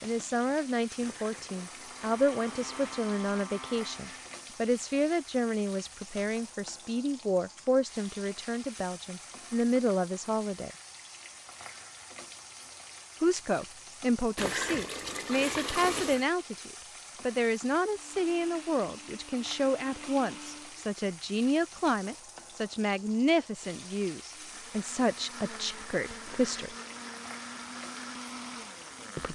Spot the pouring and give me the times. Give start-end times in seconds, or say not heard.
1.0-3.0, 14.3-16.2, 26.2-27.1.